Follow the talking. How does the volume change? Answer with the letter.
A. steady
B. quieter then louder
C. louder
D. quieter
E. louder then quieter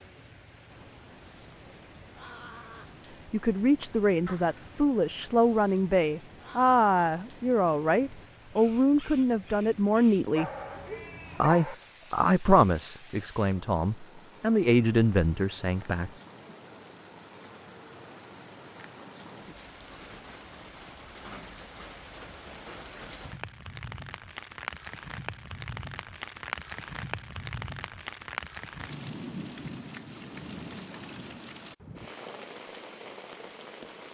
A.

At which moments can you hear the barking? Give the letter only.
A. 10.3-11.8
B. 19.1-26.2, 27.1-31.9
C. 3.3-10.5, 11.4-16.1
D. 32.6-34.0
A.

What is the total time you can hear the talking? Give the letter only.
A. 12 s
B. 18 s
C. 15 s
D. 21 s
A.